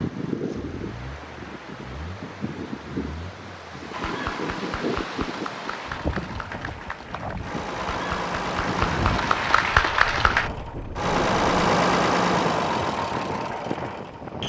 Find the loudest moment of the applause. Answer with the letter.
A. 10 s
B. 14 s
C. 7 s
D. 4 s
A.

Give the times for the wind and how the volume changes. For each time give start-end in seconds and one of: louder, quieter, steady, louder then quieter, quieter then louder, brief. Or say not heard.
0.0-14.4 steady.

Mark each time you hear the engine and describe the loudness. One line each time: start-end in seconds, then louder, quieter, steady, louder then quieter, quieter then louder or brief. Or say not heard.
0.2-14.4 louder.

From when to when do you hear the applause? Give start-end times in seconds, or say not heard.
3.9-10.5.